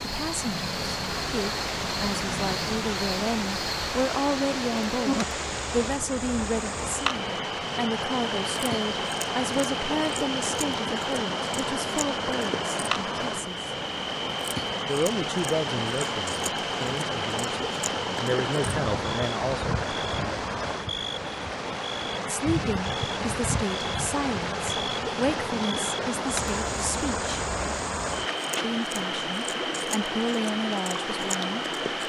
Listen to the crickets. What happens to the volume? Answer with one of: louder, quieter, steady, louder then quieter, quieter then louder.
steady.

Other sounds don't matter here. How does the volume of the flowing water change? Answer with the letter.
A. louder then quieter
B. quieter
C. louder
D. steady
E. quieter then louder
D.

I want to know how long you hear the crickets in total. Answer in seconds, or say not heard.
32 s.